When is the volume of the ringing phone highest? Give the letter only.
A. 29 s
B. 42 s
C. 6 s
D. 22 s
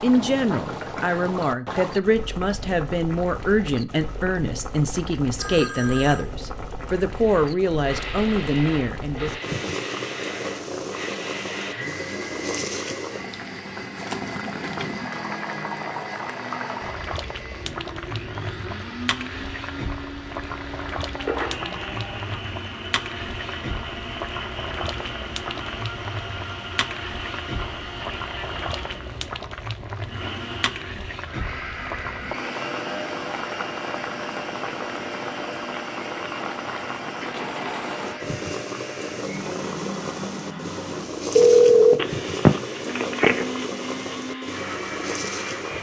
B.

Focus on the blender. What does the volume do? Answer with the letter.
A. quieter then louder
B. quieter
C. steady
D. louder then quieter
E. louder
C.